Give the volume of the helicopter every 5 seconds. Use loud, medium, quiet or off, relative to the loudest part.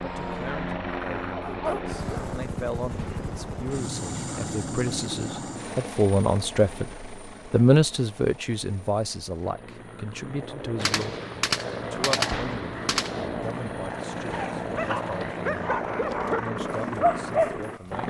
loud, medium, loud, loud.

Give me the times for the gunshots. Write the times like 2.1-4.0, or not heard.
10.8-13.3.